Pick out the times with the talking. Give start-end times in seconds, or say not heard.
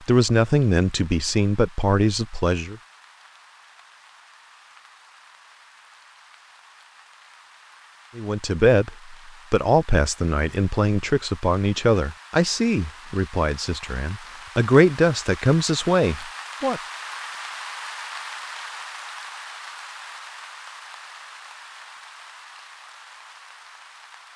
0.1-2.8, 8.2-16.8.